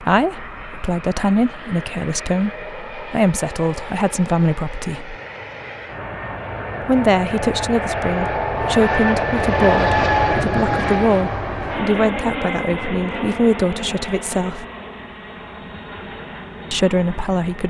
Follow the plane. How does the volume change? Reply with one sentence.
The loudness of the plane goes up, then down.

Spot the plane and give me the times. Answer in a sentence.
The plane can be heard from 0.0 to 17.6 s.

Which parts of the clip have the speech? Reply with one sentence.
The speech can be heard from 0.0 to 5.2 s, from 6.8 to 14.7 s and from 16.7 to 17.6 s.